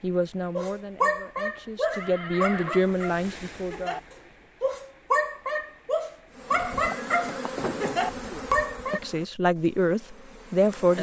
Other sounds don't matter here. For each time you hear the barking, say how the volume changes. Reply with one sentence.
The barking can be heard from 0.6 to 9.0 s, getting quieter then louder.